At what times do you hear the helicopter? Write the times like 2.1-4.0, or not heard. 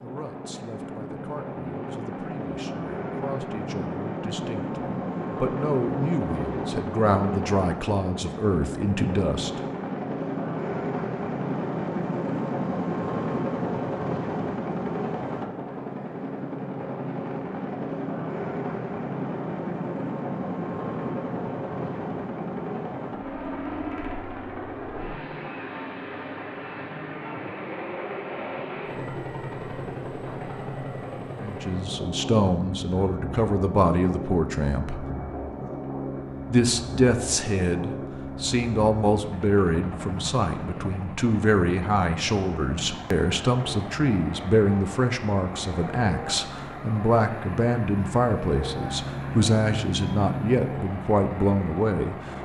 0.0-52.3.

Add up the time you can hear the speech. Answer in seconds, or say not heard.
29 s.